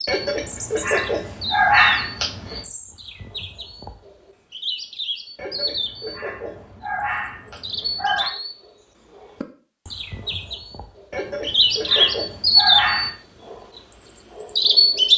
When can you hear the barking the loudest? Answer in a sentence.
The loudest moment of the barking is at 2 seconds.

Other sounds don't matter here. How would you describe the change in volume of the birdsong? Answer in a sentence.
The volume of the birdsong goes up.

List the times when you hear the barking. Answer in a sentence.
The barking can be heard from 0.1 to 2.6 s, from 5.3 to 8.3 s and from 11.1 to 13.1 s.